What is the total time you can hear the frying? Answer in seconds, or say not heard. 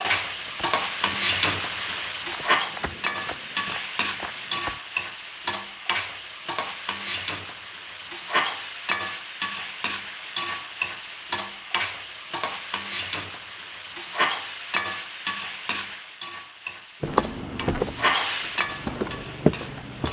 20 s.